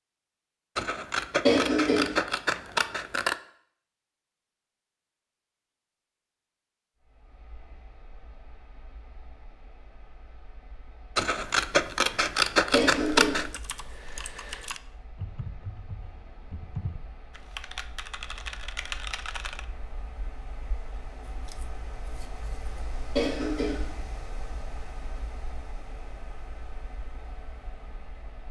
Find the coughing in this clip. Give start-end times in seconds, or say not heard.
1.4-2.1, 12.7-13.4, 23.1-23.9.